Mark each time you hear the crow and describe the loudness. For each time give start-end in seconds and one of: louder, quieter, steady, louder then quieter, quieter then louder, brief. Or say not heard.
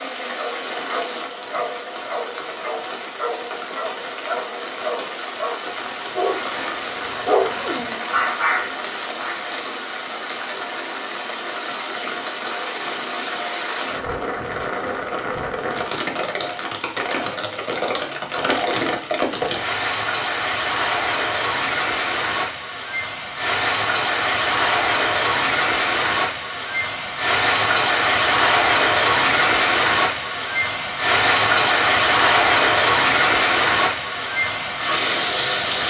not heard.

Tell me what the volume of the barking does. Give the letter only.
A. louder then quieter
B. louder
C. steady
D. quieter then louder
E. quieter
B.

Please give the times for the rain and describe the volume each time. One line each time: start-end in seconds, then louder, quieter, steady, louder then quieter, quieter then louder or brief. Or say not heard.
0.0-35.8 louder.